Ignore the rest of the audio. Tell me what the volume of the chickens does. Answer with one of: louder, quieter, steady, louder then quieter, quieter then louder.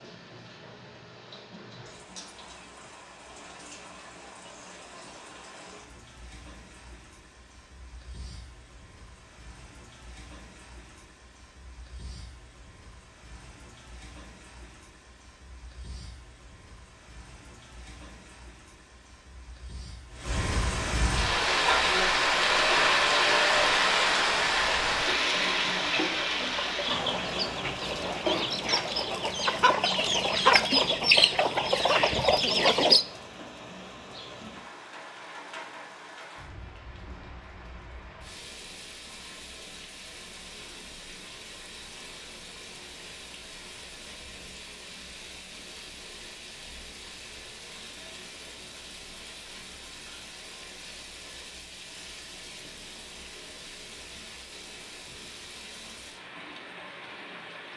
louder.